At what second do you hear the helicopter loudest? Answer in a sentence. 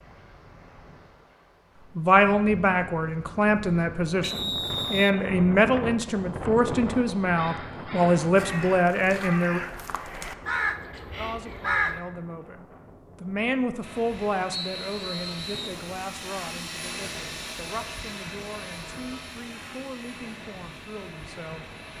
The loudest moment of the helicopter is at 17 seconds.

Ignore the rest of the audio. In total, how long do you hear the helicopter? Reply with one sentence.
The helicopter can be heard for 8 seconds in total.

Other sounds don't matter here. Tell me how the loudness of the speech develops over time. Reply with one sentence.
The loudness of the speech goes down.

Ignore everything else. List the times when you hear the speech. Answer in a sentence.
The speech can be heard from 1.9 to 9.6 s and from 11.2 to 21.6 s.